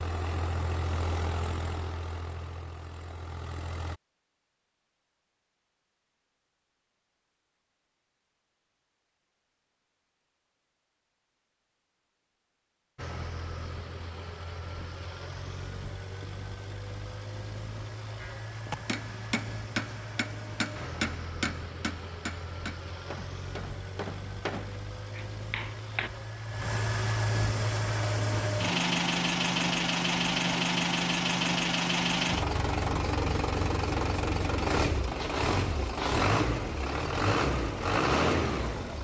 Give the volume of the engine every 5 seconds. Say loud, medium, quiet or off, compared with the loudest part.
medium, off, quiet, quiet, quiet, loud, loud, loud.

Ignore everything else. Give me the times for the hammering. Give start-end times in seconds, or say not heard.
18.2-26.1.